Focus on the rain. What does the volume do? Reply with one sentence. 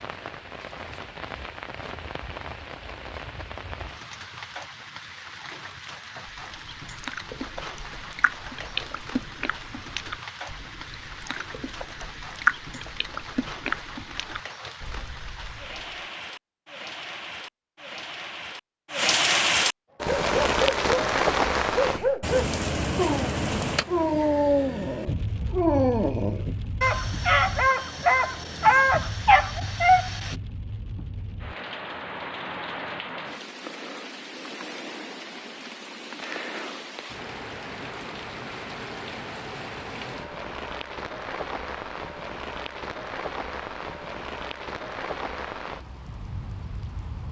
The loudness of the rain goes up, then down.